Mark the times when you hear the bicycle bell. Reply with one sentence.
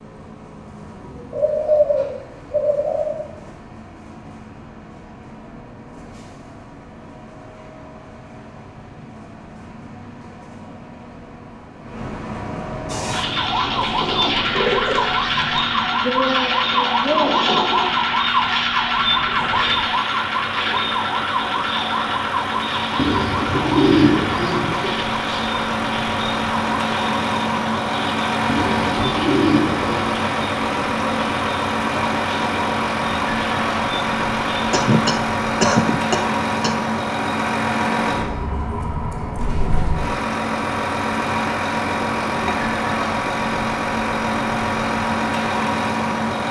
The bicycle bell can't be heard in this clip.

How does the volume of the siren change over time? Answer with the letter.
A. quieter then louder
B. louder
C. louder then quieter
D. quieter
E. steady
D.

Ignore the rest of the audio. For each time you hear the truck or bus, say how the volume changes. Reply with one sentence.
The truck or bus can be heard from 0.0 to 46.4 s, getting louder.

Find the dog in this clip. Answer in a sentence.
The dog can't be heard in this clip.